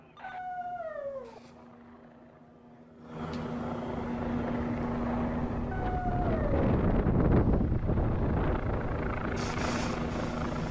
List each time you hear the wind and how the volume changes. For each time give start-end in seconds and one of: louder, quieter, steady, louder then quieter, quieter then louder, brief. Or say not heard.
4.1-10.6 louder then quieter.